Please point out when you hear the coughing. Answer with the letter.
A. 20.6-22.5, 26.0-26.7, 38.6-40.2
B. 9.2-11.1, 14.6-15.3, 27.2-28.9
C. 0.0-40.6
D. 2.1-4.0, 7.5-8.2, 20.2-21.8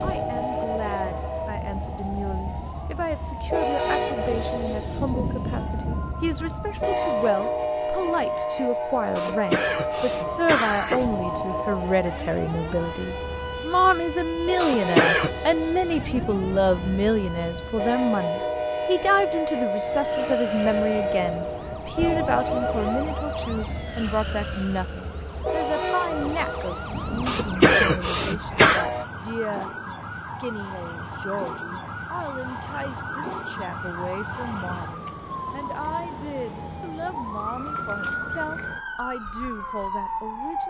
B.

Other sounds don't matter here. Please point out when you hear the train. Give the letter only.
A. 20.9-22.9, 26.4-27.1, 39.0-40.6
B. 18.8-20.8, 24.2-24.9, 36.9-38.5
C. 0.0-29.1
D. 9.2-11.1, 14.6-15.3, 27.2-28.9
C.